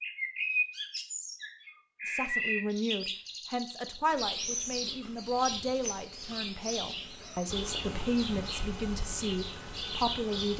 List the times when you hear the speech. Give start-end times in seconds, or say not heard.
2.0-10.5.